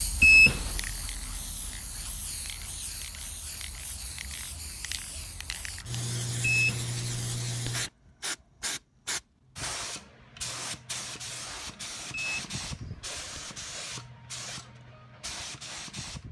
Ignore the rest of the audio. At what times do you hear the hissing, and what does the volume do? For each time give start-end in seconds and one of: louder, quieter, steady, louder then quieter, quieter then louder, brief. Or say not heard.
0.0-16.2 louder then quieter.